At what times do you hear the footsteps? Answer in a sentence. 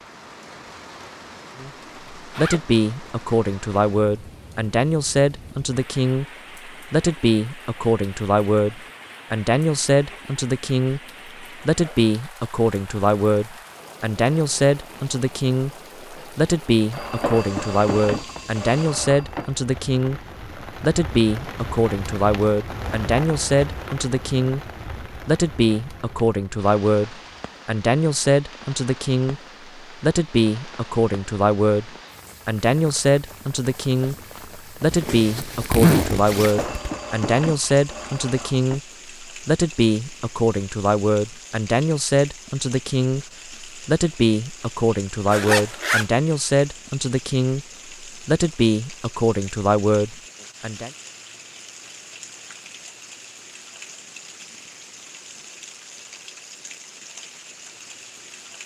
The footsteps can't be heard in this clip.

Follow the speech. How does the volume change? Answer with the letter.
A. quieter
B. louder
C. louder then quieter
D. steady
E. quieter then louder
D.